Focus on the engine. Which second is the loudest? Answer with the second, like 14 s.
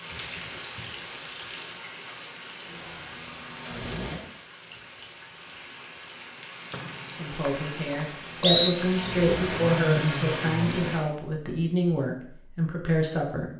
10 s.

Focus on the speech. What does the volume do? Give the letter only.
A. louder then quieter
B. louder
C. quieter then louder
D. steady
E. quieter
D.